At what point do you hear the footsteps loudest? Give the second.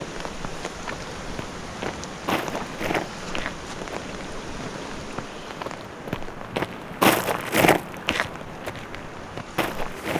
7 s.